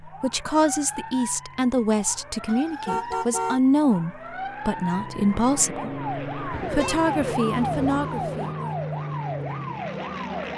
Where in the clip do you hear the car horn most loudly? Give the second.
3 s.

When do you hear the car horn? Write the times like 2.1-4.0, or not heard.
2.5-3.6, 6.5-8.6.